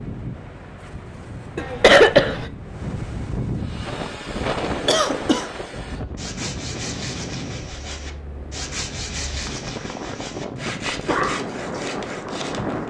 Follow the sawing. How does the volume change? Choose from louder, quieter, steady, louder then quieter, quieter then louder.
steady.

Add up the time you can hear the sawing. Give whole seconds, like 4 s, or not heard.
9 s.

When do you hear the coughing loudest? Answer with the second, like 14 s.
2 s.